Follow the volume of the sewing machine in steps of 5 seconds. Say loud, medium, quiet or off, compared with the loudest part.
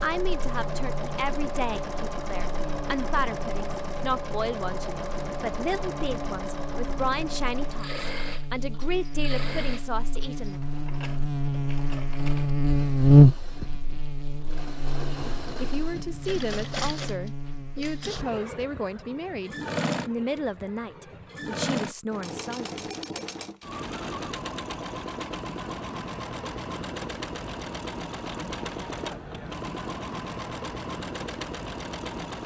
loud, loud, medium, loud, loud, loud, loud.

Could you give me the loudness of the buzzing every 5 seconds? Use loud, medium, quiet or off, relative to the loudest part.
quiet, quiet, loud, quiet, off, off, off.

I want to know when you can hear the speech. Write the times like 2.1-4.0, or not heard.
0.0-10.6, 15.6-22.8.